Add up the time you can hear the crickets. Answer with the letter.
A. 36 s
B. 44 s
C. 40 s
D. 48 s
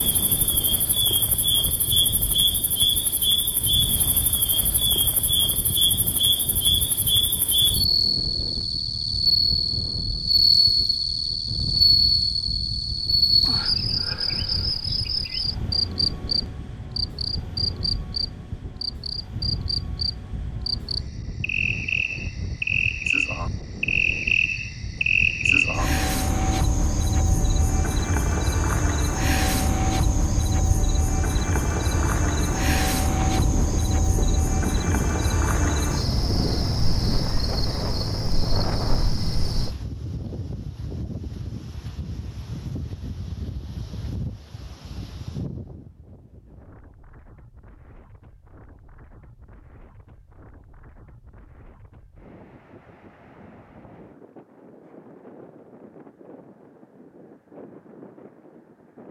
C.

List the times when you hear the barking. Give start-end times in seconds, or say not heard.
not heard.